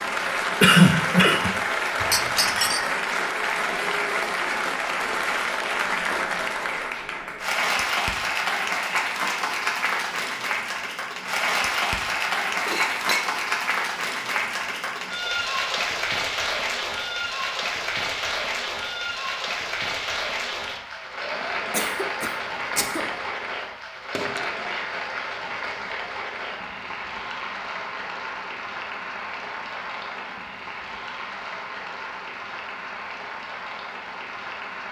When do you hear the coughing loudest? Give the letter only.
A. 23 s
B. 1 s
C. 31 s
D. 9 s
B.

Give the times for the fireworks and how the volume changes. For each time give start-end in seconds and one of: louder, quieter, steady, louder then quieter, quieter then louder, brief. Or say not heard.
not heard.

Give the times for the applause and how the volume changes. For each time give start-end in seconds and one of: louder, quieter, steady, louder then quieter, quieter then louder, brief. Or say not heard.
0.0-34.8 quieter.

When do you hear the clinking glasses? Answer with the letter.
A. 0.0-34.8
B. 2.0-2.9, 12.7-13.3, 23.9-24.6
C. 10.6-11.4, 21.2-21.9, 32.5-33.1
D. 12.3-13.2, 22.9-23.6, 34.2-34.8
B.